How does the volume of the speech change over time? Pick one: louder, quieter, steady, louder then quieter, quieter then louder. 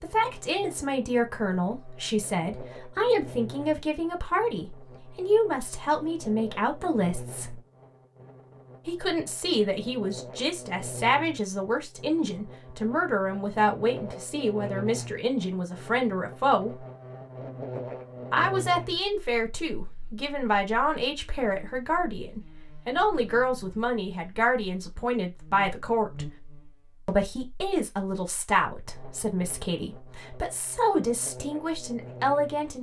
steady.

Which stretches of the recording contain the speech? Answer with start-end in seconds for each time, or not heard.
0.0-7.6, 8.8-16.8, 18.3-26.3, 27.1-32.7.